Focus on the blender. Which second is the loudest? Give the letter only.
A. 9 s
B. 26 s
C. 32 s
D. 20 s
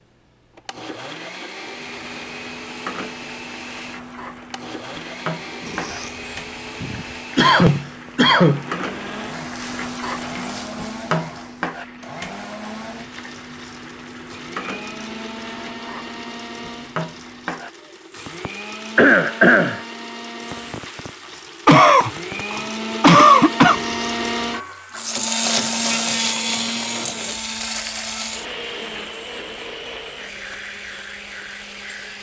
B.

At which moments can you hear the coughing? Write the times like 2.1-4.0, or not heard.
7.3-8.8, 18.9-19.8, 21.6-23.8.